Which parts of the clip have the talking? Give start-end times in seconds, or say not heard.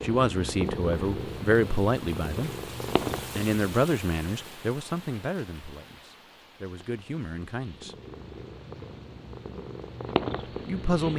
0.0-2.5, 3.4-8.0, 10.7-11.1.